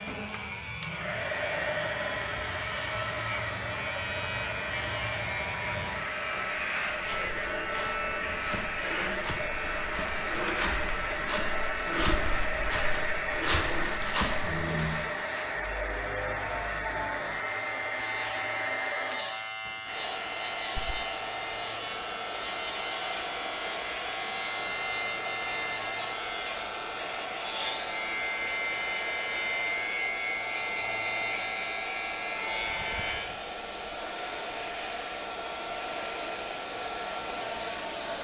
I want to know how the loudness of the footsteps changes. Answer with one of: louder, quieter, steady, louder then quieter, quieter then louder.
louder.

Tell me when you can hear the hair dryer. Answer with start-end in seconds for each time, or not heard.
0.0-38.1.